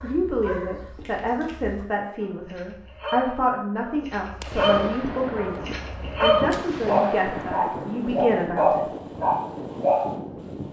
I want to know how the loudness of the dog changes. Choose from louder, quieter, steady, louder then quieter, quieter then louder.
louder.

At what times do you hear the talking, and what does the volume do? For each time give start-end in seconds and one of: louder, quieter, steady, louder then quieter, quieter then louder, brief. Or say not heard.
0.0-8.8 steady.